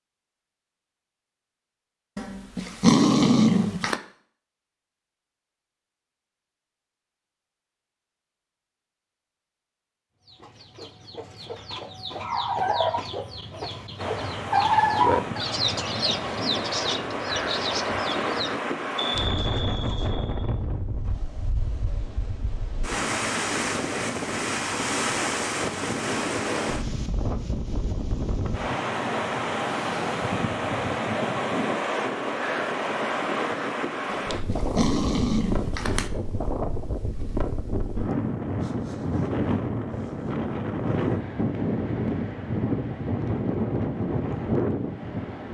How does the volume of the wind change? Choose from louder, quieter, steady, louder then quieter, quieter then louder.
steady.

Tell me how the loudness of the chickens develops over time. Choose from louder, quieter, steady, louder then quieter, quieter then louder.
louder then quieter.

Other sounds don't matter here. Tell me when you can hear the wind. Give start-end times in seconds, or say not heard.
13.9-45.4.